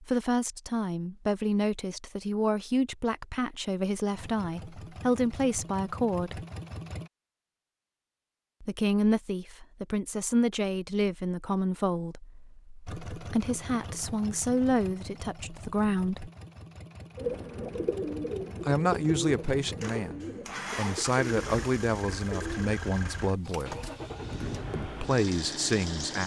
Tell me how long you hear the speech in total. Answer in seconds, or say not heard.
21 s.